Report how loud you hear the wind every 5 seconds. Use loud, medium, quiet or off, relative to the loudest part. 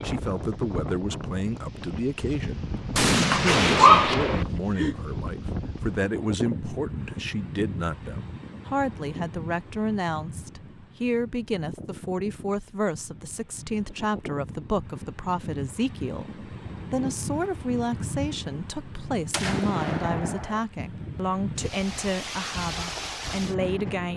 loud, loud, medium, loud, loud.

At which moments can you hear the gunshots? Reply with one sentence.
You can hear the gunshots from 3.0 to 4.5 s and from 19.3 to 20.6 s.